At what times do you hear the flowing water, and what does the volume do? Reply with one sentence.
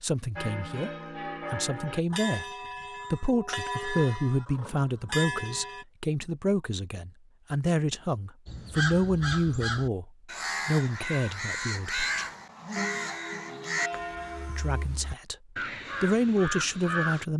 The flowing water can't be heard in this clip.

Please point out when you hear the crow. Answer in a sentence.
The crow can be heard from 8.4 to 17.2 s.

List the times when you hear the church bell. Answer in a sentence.
The church bell can be heard from 0.3 to 5.8 s and from 11.9 to 14.8 s.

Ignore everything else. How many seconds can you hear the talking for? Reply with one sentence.
You can hear the talking for 14 seconds altogether.